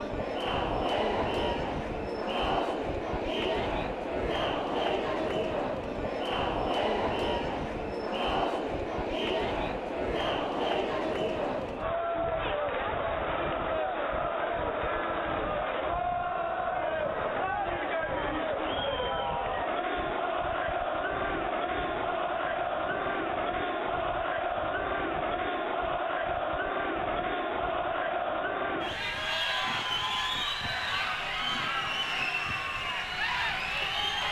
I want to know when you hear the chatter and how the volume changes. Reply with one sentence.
You can hear the chatter from 0.0 to 34.2 s, at a steady volume.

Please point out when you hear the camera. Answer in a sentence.
The camera can't be heard in this clip.